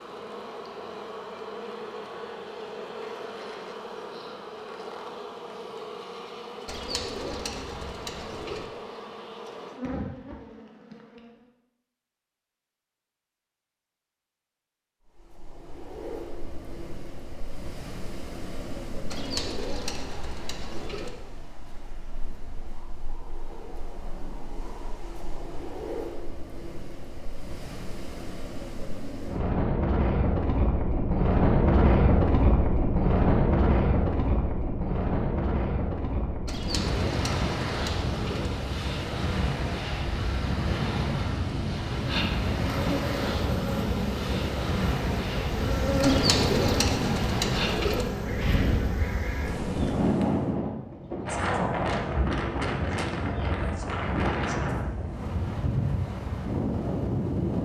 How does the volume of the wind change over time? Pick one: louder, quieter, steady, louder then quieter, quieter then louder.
louder.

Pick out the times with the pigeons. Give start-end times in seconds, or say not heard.
6.7-8.7, 19.1-21.1, 36.5-38.5, 46.0-48.0.